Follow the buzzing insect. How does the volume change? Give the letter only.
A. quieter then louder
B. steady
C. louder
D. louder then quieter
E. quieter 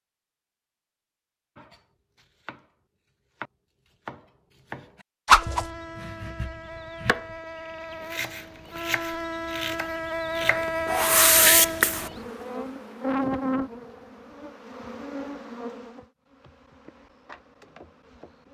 D.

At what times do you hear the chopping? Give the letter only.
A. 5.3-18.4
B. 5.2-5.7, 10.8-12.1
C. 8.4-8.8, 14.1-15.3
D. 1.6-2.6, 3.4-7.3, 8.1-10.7
D.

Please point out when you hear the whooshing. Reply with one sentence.
The whooshing can be heard from 5.2 to 5.7 s and from 10.8 to 12.1 s.